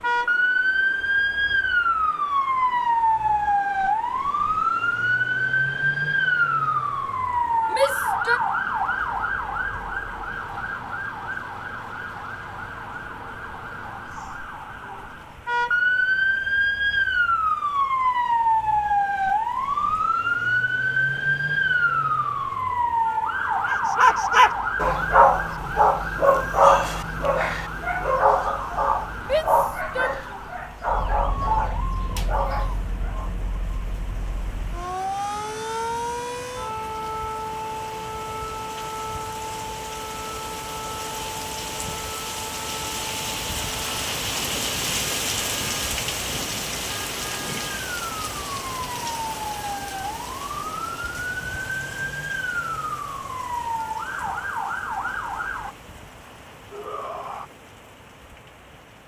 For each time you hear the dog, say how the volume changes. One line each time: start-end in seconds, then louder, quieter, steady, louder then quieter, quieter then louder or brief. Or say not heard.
23.6-33.3 quieter.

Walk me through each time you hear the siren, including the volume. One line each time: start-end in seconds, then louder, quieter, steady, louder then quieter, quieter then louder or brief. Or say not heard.
0.0-55.8 quieter.